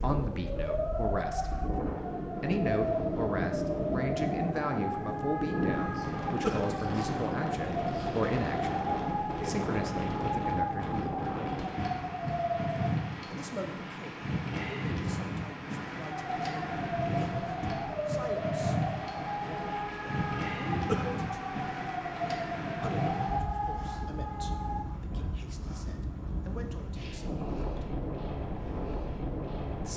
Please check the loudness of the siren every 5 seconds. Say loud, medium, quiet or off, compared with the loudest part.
loud, loud, loud, loud, loud, off.